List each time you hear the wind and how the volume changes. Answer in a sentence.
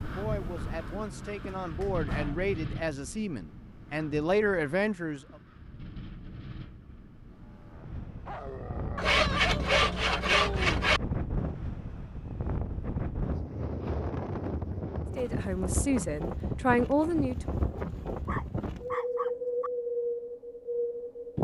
The wind can be heard from 0.0 to 21.4 s, getting quieter then louder.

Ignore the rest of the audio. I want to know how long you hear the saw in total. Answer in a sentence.
You can hear the saw for 2 seconds altogether.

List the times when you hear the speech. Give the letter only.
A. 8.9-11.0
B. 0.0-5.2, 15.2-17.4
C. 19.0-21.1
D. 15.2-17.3
B.